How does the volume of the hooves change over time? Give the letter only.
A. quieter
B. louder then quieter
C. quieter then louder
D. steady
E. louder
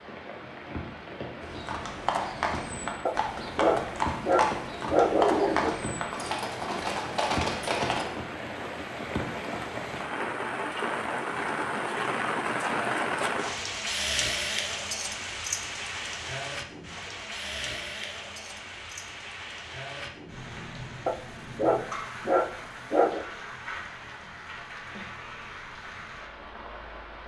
D.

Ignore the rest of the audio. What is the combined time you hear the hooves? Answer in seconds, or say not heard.
7 s.